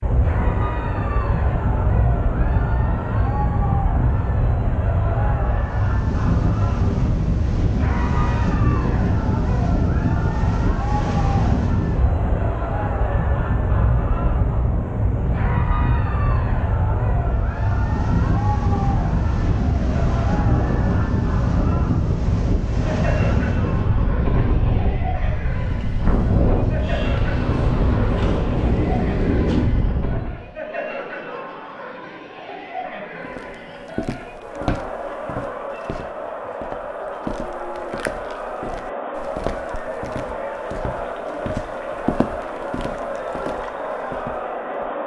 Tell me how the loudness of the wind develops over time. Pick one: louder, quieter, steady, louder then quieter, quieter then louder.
steady.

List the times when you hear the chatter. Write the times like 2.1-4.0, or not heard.
0.1-45.0.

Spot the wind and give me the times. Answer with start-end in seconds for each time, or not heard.
0.0-30.4.